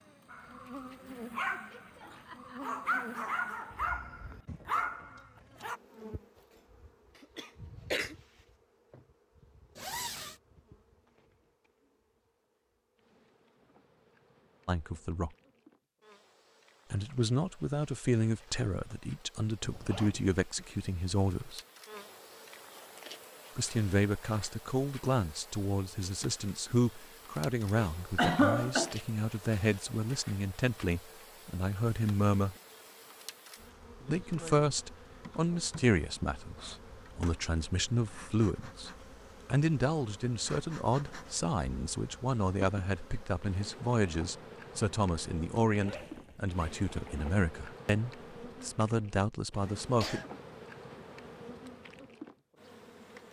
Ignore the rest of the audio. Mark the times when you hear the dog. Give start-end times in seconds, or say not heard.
0.3-5.8.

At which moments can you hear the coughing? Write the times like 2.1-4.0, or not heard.
7.2-8.2, 28.1-28.9, 49.6-50.2.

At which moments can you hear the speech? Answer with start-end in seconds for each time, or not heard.
14.7-15.3, 16.9-21.6, 23.6-32.5, 34.0-50.2.